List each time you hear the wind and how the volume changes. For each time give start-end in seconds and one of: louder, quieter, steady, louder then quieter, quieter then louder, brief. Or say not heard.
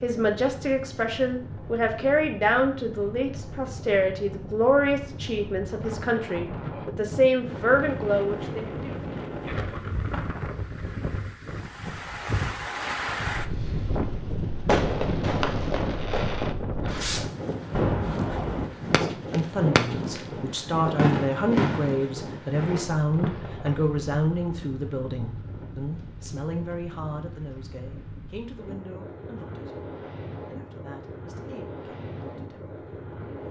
0.0-33.4 louder then quieter.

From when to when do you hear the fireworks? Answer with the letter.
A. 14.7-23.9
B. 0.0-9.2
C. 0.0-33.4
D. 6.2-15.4
A.